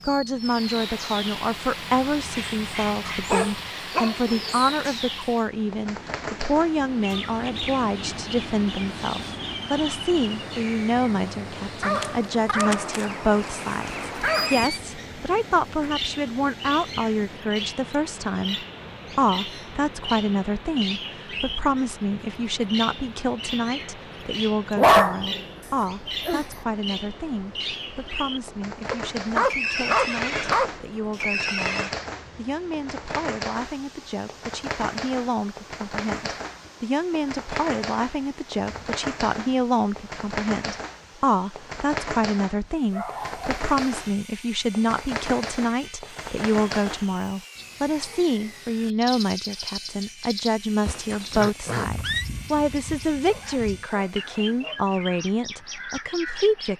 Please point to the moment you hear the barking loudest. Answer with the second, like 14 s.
25 s.